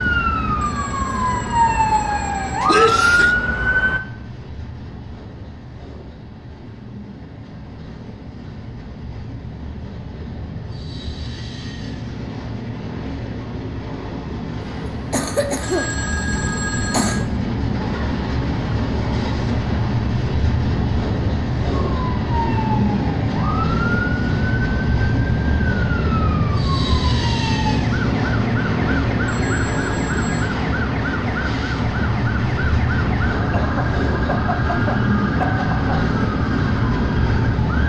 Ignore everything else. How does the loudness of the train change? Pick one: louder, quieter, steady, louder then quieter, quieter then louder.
louder.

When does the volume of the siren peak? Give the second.
3 s.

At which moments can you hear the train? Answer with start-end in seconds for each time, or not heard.
0.0-37.8.